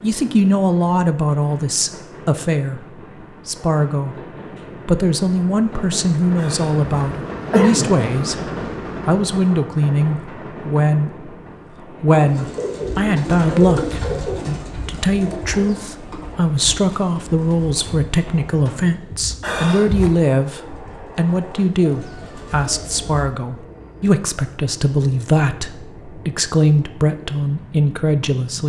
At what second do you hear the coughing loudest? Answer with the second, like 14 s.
8 s.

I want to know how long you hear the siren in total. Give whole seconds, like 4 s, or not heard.
not heard.